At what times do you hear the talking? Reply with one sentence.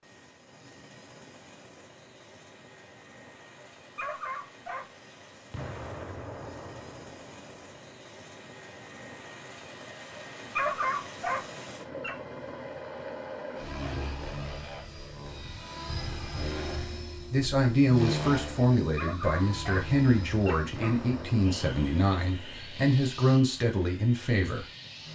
You can hear the talking from 17.3 to 24.6 s.